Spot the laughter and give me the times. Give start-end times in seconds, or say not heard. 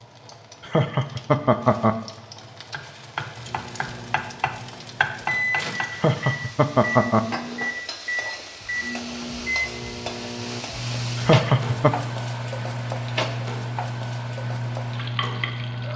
0.6-1.9, 5.9-7.2, 11.2-11.9.